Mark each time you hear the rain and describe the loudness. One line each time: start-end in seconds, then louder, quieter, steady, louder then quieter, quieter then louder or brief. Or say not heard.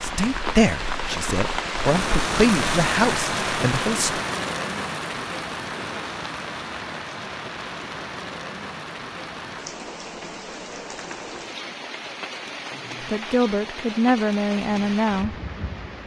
0.0-16.0 quieter.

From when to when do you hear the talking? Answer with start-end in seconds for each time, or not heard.
0.0-4.2, 13.1-15.3.